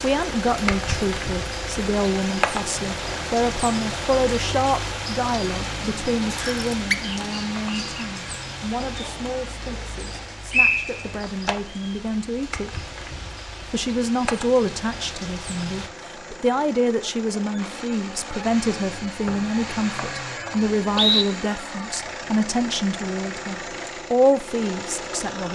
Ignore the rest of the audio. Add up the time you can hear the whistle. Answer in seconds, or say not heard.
3 s.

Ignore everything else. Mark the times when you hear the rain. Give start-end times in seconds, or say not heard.
0.0-15.9.